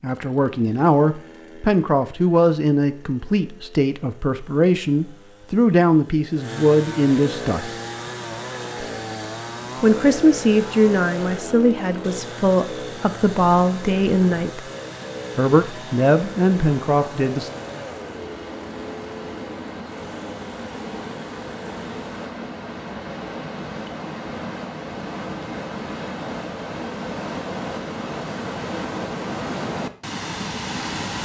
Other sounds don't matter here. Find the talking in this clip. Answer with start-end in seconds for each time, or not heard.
0.0-7.7, 9.8-14.7, 15.3-17.5.